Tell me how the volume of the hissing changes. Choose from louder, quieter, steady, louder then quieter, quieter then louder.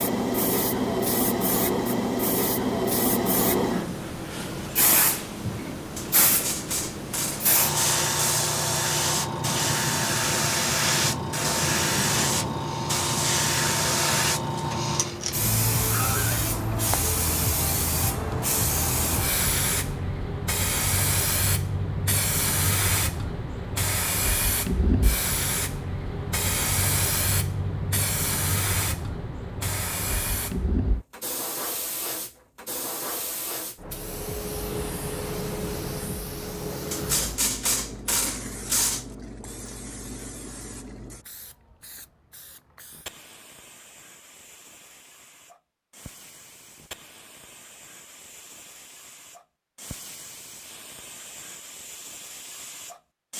quieter.